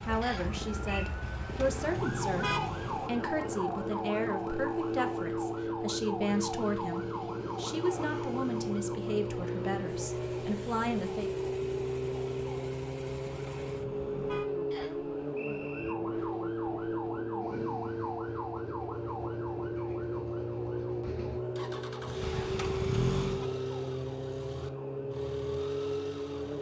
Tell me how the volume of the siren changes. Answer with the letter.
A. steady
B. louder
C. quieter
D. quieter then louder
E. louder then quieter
A.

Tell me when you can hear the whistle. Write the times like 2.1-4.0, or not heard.
0.2-1.1, 14.7-15.9.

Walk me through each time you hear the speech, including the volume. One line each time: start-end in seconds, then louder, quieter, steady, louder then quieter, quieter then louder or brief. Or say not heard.
0.0-11.3 steady.